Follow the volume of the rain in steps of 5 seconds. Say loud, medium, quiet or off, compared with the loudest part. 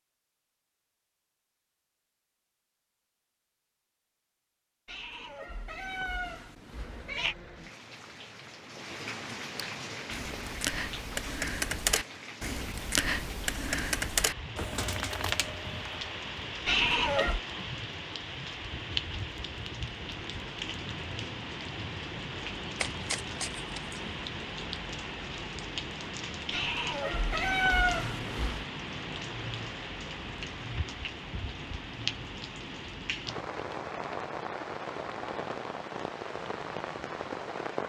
off, medium, medium, loud, loud, loud, loud, loud.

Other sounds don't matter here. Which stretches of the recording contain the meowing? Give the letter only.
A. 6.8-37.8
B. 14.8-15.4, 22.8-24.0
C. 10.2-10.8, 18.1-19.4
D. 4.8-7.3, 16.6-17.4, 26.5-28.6
D.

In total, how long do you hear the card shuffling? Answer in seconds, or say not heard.
2 s.